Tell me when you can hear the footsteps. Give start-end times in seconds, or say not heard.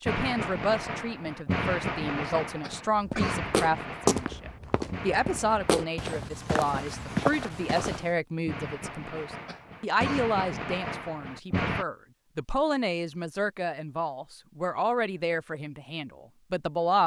3.0-8.1.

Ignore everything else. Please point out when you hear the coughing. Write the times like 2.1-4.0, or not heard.
2.6-3.4, 9.4-10.2.